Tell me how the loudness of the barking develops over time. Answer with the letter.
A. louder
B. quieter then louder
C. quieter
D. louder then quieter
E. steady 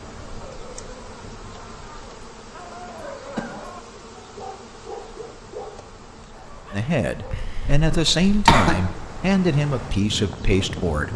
D.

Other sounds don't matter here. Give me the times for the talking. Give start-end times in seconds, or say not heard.
6.7-11.1.